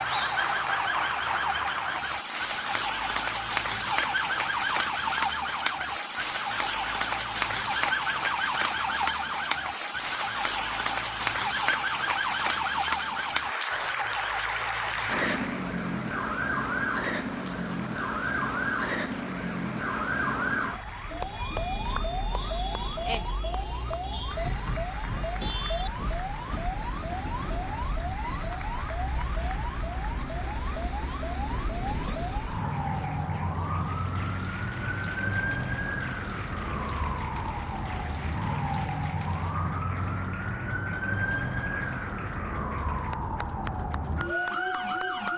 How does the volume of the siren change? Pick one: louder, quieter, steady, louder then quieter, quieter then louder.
steady.